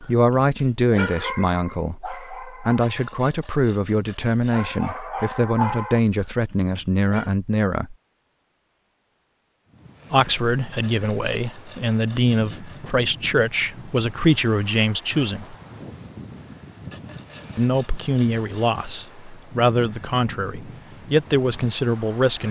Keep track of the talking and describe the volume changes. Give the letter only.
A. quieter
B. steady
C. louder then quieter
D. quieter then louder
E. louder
B.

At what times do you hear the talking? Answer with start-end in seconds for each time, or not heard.
0.0-8.0, 10.1-15.6, 17.6-22.4.